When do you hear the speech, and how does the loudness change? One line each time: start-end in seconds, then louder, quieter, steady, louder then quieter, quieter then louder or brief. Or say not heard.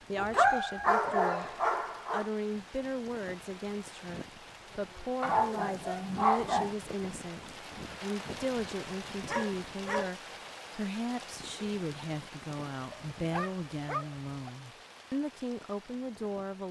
0.1-16.6 steady.